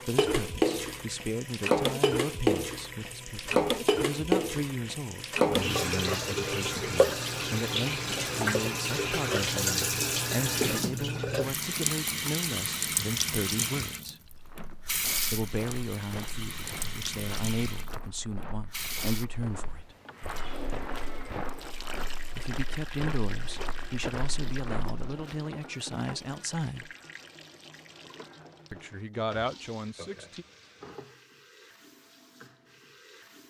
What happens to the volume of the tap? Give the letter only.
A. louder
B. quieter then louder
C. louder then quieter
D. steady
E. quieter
E.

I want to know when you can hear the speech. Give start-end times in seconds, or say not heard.
0.1-14.2, 15.3-19.9, 22.2-26.9, 28.7-30.4.